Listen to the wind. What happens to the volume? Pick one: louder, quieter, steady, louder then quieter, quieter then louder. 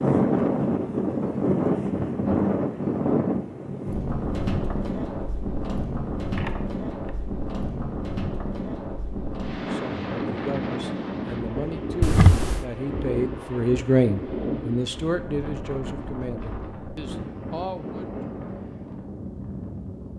quieter.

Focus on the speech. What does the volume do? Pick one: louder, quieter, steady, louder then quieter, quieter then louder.
louder then quieter.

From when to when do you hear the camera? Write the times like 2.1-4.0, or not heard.
6.3-7.1, 12.0-12.7.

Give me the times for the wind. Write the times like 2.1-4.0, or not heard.
0.0-20.1.